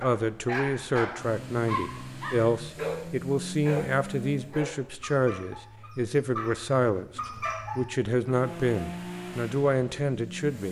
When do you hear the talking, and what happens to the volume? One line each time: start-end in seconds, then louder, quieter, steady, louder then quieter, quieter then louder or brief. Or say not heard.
0.0-10.6 steady.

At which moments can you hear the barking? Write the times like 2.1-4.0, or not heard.
0.0-3.9, 4.5-7.9.